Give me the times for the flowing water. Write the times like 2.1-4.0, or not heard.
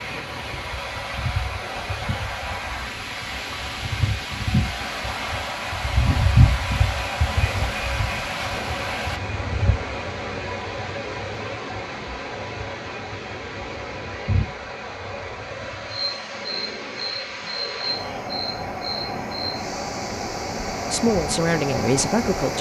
0.0-22.5.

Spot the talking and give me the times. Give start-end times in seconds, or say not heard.
20.9-22.5.